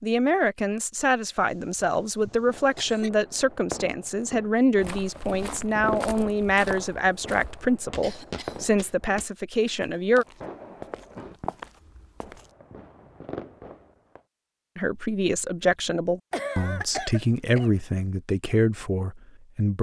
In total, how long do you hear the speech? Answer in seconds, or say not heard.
15 s.